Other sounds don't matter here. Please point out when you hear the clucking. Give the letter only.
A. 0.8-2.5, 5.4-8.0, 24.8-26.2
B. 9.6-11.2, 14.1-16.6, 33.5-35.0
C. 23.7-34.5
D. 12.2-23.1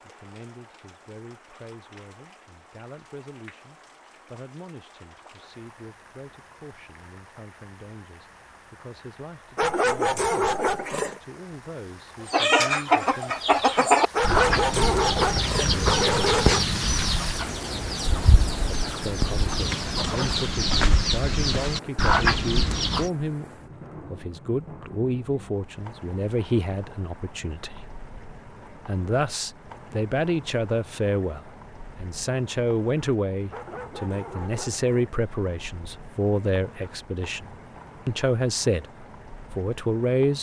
D.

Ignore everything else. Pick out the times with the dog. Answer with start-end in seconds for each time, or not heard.
9.6-11.2, 14.1-16.6, 33.5-35.0.